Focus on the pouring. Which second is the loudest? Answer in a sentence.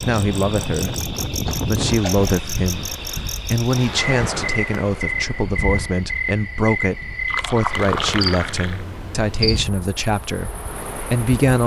The volume of the pouring peaks at 8 seconds.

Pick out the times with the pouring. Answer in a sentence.
The pouring can be heard from 1.4 to 2.4 s and from 7.2 to 8.8 s.